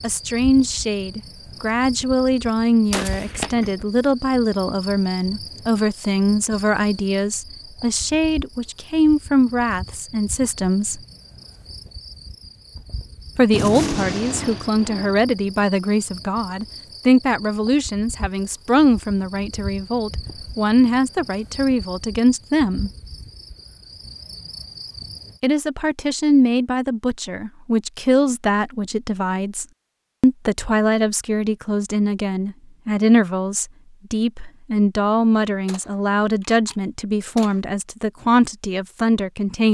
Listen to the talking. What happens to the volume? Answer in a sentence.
The volume of the talking stays about the same.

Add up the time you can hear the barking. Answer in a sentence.
You can't hear the barking here.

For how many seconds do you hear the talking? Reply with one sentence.
The talking can be heard for 35 seconds in total.